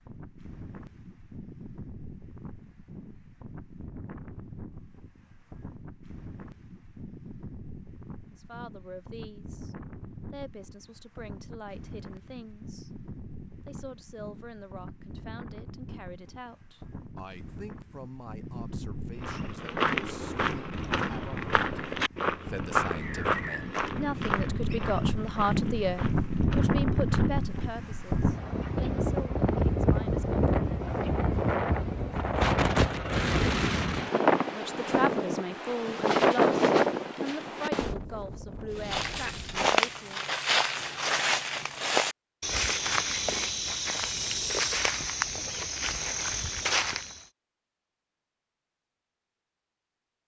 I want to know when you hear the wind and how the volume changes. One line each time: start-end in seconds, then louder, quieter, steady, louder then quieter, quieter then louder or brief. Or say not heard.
0.0-39.7 louder.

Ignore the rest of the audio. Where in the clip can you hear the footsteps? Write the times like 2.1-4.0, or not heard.
19.2-27.6, 38.8-47.2.